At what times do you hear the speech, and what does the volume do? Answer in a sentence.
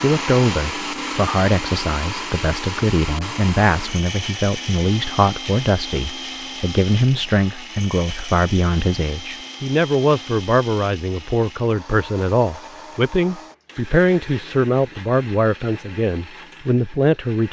You can hear the speech from 0.0 to 17.4 s, at a steady volume.